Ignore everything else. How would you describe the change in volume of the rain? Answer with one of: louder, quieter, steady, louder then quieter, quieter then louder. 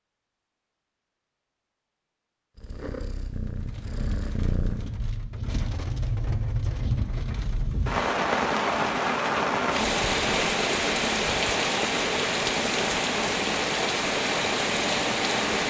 louder.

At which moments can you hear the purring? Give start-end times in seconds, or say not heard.
2.5-4.9.